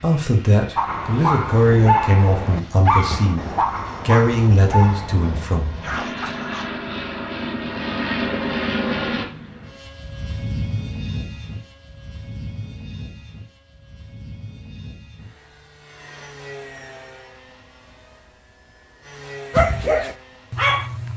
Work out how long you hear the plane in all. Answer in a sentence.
You can hear the plane for 21 seconds altogether.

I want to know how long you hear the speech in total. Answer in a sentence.
You can hear the speech for 6 seconds altogether.